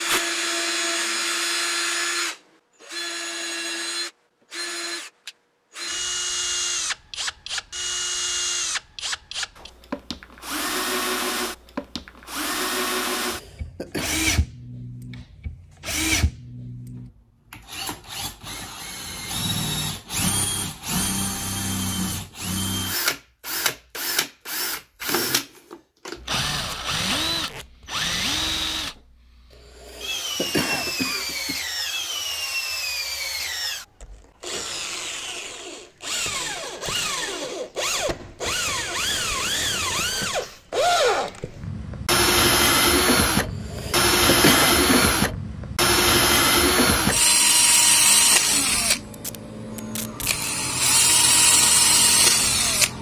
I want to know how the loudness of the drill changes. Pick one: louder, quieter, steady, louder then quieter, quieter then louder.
louder.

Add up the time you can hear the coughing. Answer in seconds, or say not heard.
4 s.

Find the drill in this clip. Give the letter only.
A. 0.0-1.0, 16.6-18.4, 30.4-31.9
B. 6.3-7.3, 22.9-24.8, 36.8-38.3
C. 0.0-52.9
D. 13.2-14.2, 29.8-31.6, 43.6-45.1
C.